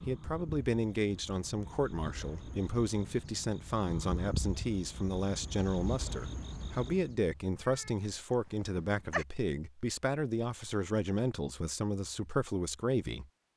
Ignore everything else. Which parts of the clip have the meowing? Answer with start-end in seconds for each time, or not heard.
7.2-9.2.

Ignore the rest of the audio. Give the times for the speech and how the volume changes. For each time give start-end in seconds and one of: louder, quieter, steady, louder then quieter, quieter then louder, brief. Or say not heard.
0.1-13.2 steady.